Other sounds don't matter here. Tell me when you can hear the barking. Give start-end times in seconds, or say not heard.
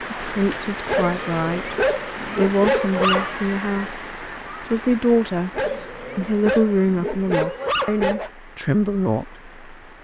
0.8-3.4, 5.5-8.3.